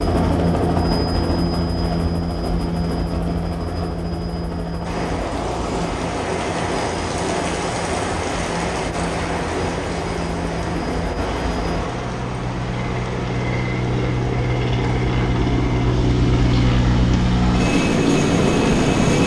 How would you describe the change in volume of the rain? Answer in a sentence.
The volume of the rain goes down.